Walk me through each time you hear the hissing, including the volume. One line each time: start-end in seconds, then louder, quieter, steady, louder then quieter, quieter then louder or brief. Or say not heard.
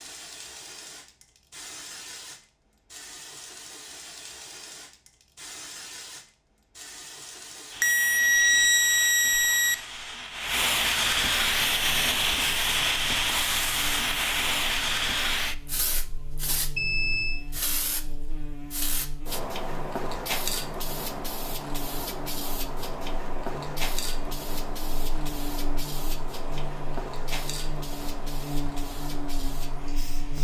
0.0-30.4 louder then quieter.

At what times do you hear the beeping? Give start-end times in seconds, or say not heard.
7.8-9.8, 16.8-17.4.